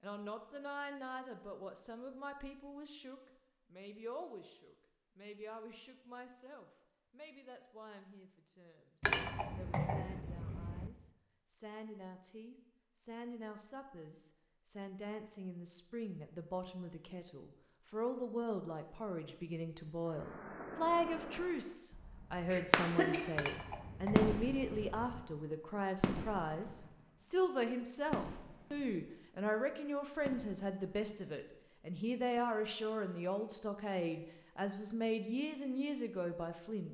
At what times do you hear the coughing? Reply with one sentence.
The coughing can be heard from 22.5 to 23.2 s.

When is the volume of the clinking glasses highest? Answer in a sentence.
The volume of the clinking glasses peaks at 9 seconds.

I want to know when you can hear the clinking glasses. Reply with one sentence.
The clinking glasses can be heard from 9.0 to 10.9 s and from 23.4 to 25.2 s.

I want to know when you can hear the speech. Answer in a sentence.
You can hear the speech from 0.0 to 36.9 s.